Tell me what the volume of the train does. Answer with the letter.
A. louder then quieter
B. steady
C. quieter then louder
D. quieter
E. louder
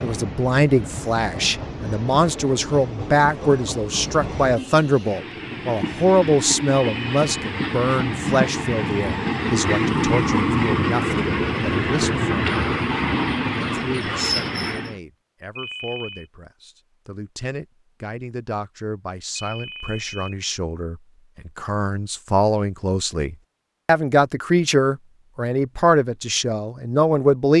E.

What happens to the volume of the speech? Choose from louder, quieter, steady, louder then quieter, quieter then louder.
quieter then louder.